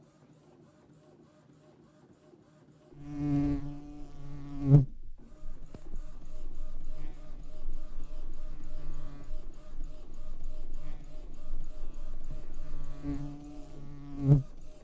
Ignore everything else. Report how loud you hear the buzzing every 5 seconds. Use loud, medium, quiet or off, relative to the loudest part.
loud, quiet, medium.